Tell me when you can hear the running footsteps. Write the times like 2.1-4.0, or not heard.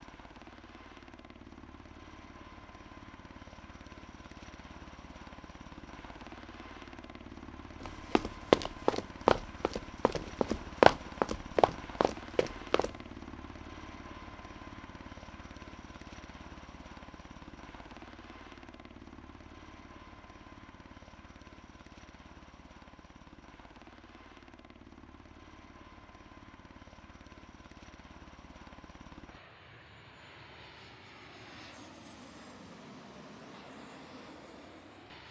7.8-12.9.